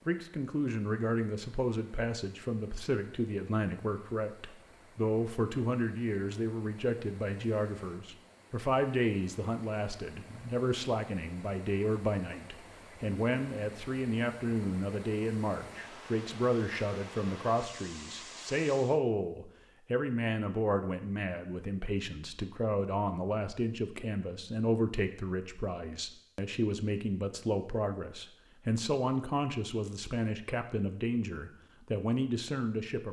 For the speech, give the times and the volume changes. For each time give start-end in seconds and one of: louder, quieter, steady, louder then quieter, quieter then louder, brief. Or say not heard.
0.1-33.0 steady.